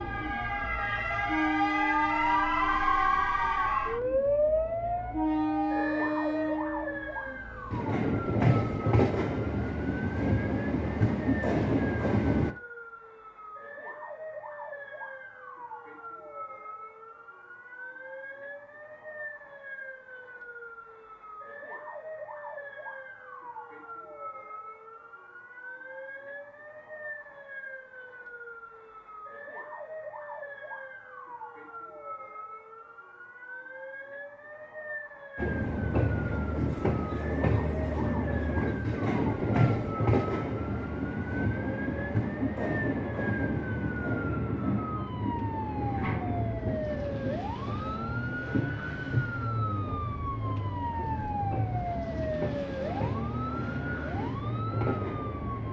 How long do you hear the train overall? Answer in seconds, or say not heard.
33 s.